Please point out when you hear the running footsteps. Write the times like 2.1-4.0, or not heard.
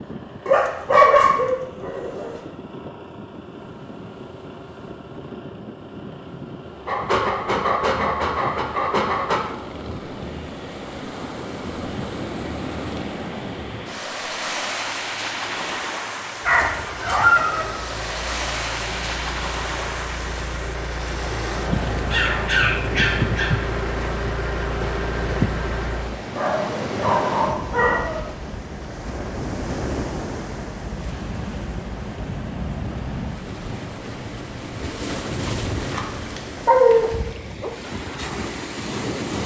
not heard.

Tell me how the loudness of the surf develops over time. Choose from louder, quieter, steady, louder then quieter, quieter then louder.
louder.